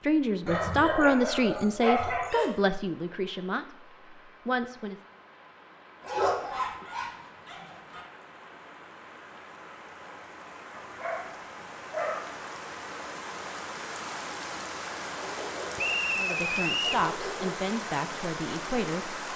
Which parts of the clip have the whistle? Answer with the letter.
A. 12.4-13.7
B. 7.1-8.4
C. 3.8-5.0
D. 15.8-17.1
D.